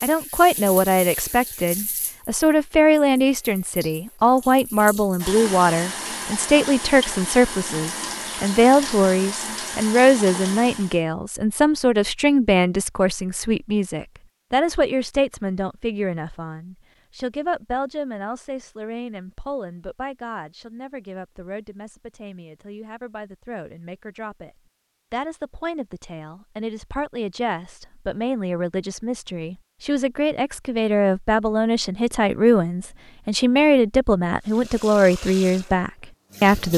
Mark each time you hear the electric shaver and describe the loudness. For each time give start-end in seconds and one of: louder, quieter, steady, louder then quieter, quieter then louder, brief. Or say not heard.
not heard.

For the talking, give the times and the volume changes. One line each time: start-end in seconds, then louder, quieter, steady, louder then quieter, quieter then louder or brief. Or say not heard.
0.0-36.7 quieter then louder.